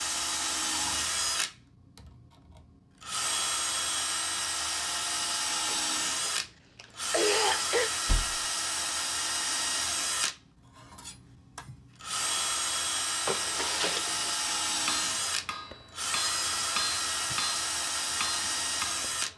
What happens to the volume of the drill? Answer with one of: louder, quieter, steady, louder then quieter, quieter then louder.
steady.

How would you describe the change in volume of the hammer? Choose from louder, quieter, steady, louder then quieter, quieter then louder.
louder.